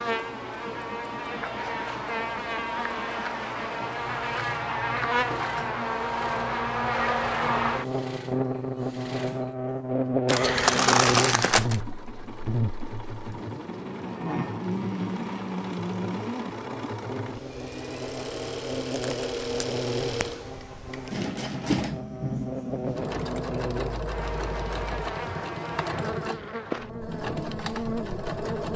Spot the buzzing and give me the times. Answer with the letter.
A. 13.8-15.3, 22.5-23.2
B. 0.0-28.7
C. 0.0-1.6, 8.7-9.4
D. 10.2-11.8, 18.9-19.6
B.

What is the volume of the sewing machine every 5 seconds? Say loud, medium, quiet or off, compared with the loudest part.
medium, medium, medium, loud, loud, loud.